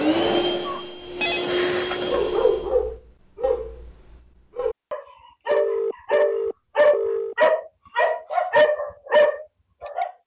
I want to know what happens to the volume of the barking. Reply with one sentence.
The volume of the barking goes down, then up.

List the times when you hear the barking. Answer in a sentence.
You can hear the barking from 2.0 to 10.1 s.